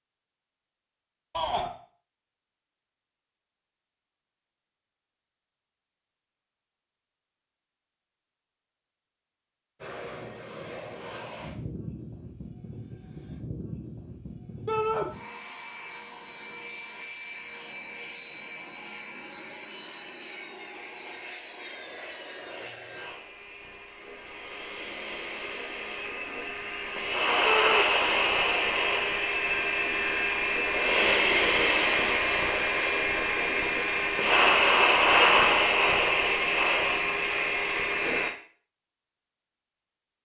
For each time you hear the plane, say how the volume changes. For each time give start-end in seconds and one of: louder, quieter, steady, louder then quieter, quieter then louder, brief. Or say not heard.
9.8-38.3 louder.